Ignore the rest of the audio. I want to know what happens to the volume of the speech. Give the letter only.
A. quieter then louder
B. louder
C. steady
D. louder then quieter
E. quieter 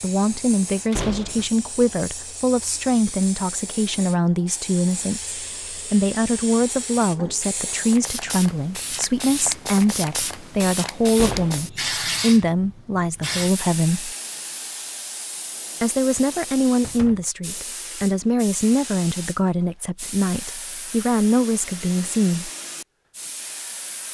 C.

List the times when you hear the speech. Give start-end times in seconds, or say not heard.
0.0-14.2, 15.8-22.5.